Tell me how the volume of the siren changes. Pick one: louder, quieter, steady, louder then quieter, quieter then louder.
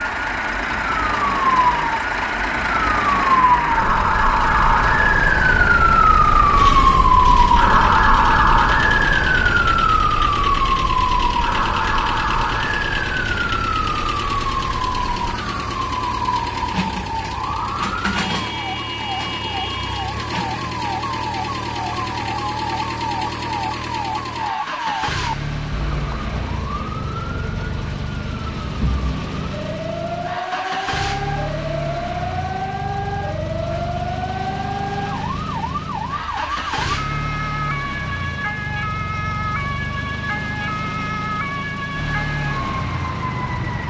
quieter.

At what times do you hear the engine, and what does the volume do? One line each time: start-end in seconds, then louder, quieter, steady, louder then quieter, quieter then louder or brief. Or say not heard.
0.0-43.8 steady.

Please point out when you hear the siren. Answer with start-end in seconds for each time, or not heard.
0.0-43.8.